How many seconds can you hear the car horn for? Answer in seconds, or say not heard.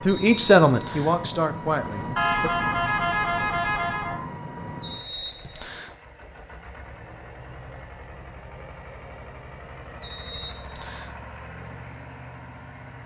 2 s.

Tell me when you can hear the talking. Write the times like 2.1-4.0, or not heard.
0.0-2.5.